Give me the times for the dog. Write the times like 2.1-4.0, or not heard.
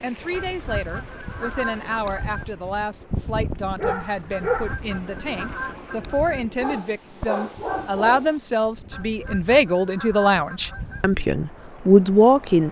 3.8-4.8, 6.5-8.3.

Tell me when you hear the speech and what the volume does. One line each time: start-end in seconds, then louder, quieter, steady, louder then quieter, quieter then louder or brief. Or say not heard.
0.0-12.6 louder.